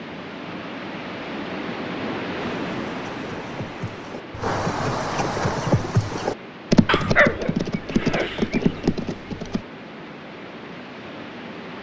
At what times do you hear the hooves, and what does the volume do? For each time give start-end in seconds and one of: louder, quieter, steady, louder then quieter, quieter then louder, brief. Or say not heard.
2.4-9.6 louder.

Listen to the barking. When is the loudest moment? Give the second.
7 s.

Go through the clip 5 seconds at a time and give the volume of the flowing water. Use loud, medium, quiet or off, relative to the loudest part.
loud, medium, medium.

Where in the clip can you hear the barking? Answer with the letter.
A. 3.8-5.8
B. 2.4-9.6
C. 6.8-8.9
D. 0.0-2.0
C.